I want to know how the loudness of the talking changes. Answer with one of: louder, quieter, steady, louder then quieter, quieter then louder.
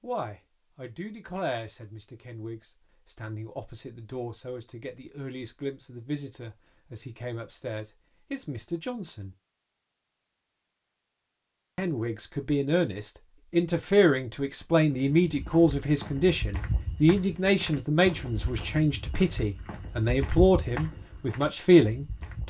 louder.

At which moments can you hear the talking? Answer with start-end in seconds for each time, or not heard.
0.0-9.3, 11.8-22.4.